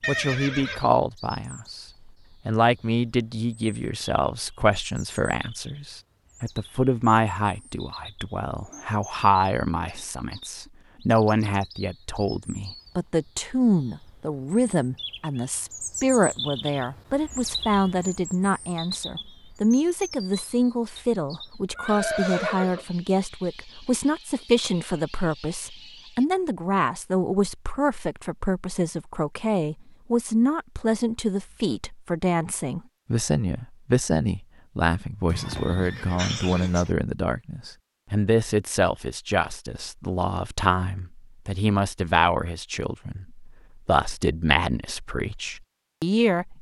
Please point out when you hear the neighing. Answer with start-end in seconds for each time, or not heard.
0.0-0.8, 21.8-22.9, 35.2-37.0.